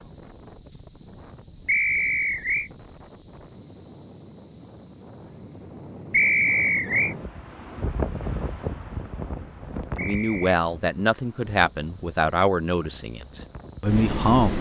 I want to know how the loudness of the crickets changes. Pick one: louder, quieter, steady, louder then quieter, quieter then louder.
quieter then louder.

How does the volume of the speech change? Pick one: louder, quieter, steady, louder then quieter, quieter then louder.
quieter then louder.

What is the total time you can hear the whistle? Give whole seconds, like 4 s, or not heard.
3 s.